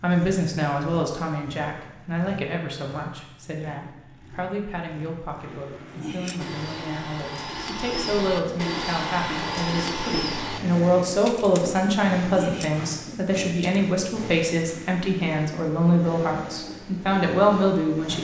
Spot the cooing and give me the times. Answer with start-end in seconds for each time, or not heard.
5.8-13.8.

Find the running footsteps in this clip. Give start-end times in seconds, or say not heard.
not heard.